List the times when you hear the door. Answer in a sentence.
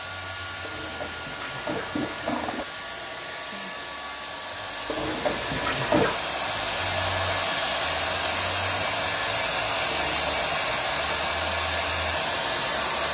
The door can't be heard in this clip.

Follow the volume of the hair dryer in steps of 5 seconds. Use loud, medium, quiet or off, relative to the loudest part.
medium, loud, loud.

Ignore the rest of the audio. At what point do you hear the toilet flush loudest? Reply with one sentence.
The loudest moment of the toilet flush is at 6 seconds.